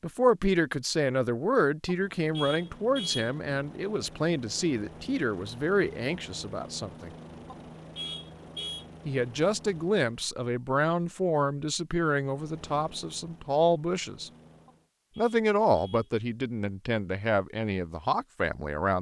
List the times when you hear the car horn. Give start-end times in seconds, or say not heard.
1.9-3.3, 7.5-8.8, 14.7-16.1.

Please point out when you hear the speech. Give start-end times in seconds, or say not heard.
0.0-7.1, 9.1-14.3, 15.2-18.9.